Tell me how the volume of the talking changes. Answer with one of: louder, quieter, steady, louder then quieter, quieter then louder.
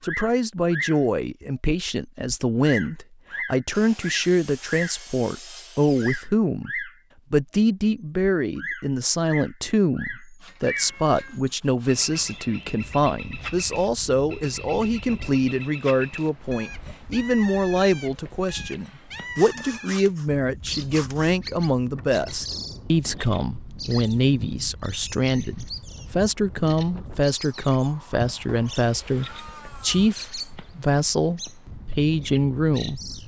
steady.